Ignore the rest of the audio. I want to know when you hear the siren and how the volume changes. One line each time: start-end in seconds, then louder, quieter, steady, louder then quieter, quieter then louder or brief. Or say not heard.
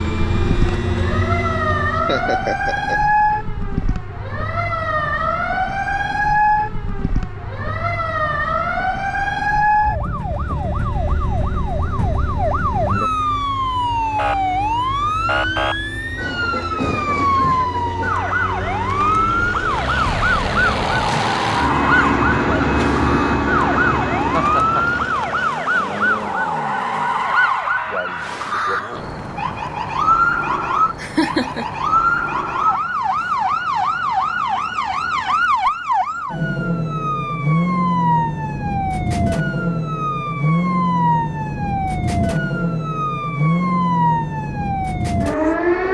0.0-45.8 steady.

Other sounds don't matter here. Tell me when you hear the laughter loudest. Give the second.
31 s.